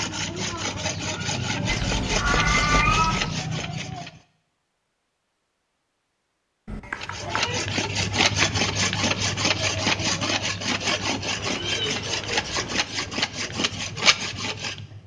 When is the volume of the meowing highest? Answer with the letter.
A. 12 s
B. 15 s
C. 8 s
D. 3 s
D.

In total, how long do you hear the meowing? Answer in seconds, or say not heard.
4 s.